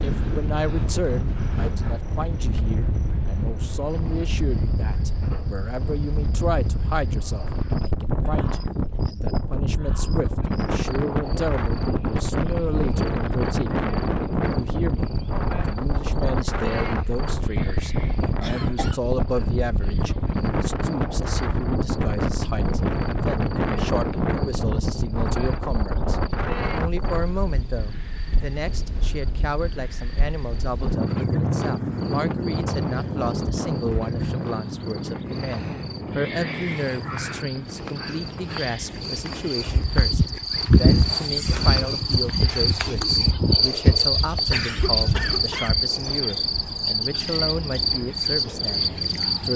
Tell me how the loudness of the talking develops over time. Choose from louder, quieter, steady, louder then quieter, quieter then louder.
steady.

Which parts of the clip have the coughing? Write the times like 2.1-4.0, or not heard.
18.4-19.0, 44.5-45.9.